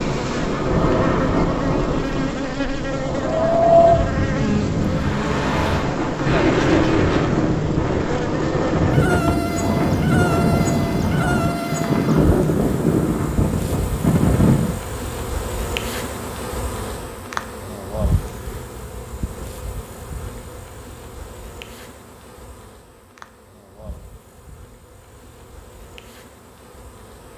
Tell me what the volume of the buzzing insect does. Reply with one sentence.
The loudness of the buzzing insect goes down.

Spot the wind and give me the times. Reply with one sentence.
The wind can be heard from 0.0 to 14.8 s.